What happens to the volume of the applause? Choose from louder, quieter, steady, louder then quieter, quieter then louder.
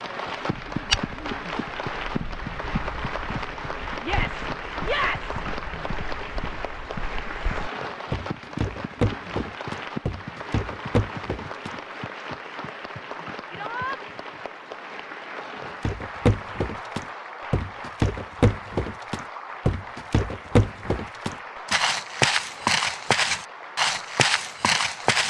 quieter.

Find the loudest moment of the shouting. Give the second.
5 s.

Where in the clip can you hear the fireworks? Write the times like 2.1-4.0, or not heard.
not heard.